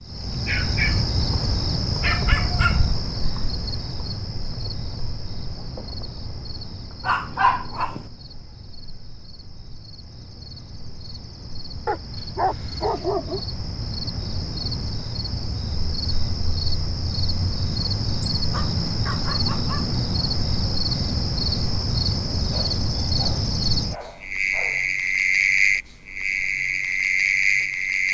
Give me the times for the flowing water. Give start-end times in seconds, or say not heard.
not heard.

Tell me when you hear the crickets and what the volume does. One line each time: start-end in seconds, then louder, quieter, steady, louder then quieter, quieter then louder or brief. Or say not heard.
0.0-28.1 quieter then louder.